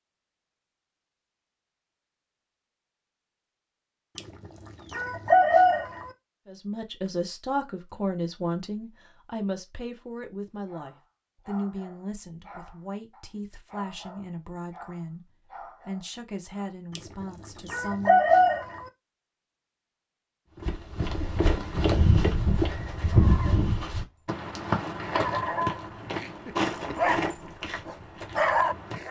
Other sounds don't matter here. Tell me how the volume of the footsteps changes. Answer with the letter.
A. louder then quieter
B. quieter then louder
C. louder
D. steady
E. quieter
E.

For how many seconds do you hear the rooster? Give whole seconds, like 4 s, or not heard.
4 s.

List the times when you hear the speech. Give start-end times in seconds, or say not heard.
6.5-18.4.